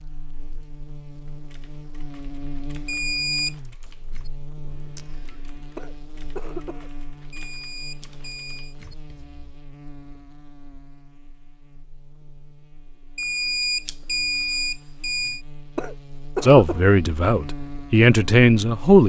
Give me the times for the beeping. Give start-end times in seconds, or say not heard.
2.9-3.5, 7.3-8.7, 13.2-15.4.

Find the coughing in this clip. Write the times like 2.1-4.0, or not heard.
5.8-6.9, 15.8-16.9.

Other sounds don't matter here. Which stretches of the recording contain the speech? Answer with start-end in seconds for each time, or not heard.
16.4-19.0.